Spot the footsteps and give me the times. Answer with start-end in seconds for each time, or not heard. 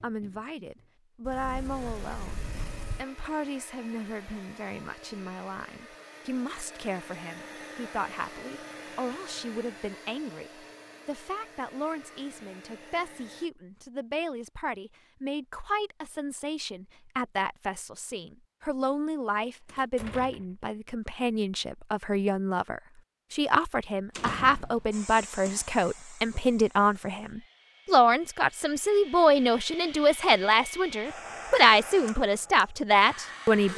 not heard.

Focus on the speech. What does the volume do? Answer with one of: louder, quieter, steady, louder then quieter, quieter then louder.
louder.